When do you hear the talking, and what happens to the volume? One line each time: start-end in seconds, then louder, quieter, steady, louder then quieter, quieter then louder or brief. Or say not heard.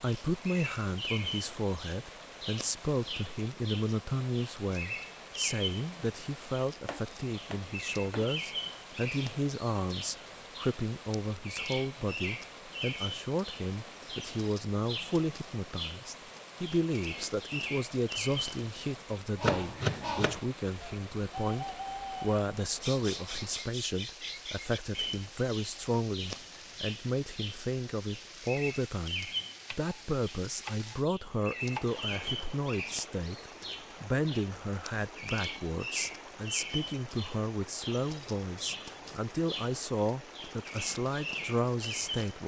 0.0-42.4 steady.